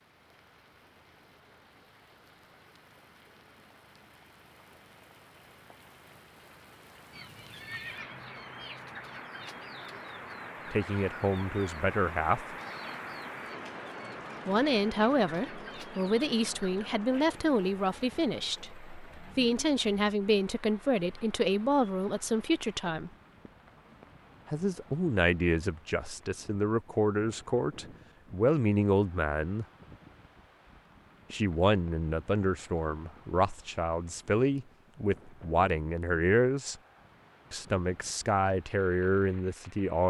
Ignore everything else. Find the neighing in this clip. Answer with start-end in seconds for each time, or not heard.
7.5-8.2.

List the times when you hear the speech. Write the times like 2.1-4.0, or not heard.
10.7-12.6, 14.4-23.1, 24.4-29.6, 31.3-36.8, 37.5-40.0.